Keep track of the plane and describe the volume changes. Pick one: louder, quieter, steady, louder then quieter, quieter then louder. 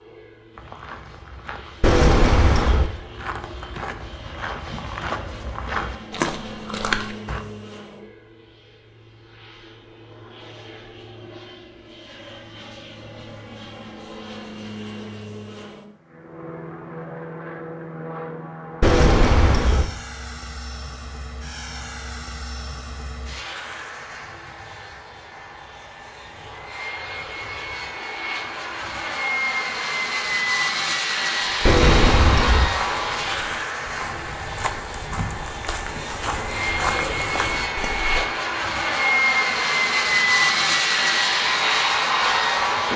louder.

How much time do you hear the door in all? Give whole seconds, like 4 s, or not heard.
3 s.